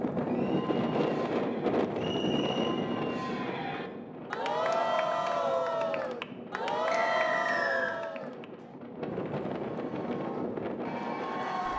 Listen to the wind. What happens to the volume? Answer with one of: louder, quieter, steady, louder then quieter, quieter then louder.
quieter then louder.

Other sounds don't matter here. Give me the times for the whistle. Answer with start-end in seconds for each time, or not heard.
1.9-2.8, 6.9-8.0.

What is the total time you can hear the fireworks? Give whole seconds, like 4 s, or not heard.
not heard.